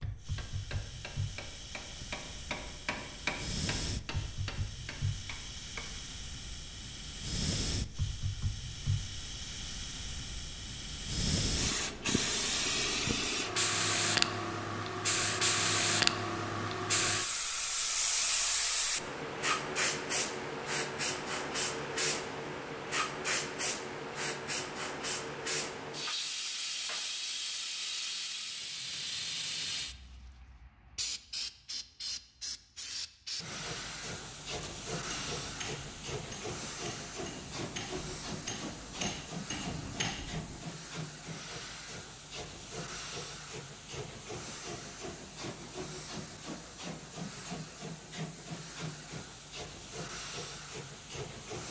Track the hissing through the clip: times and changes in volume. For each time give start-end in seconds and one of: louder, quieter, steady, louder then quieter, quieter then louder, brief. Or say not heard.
0.0-51.6 louder then quieter.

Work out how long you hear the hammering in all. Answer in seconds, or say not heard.
12 s.